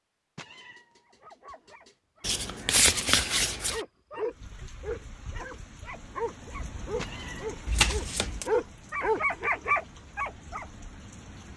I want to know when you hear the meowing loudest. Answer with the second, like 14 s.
7 s.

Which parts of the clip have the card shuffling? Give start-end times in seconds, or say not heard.
2.2-3.8, 7.7-8.5.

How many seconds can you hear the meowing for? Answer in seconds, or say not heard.
2 s.